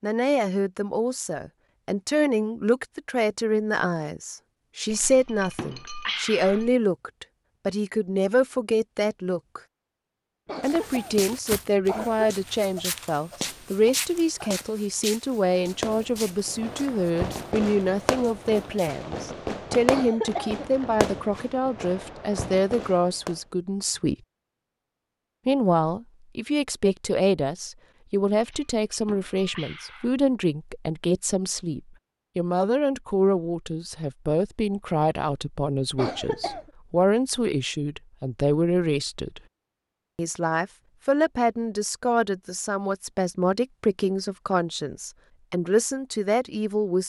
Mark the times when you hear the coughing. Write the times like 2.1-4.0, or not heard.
10.4-12.3, 19.9-20.9, 36.0-36.7.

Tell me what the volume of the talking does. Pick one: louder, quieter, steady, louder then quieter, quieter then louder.
steady.